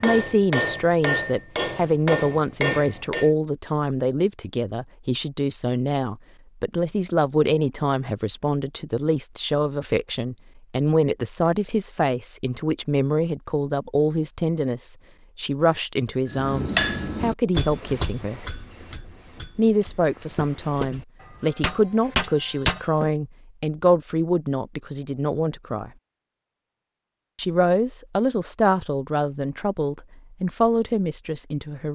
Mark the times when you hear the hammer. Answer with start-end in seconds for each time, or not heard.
0.0-3.3, 16.3-23.1.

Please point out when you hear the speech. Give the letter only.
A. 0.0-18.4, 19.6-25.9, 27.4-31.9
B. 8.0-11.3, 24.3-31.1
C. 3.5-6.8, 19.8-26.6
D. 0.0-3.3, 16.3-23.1
A.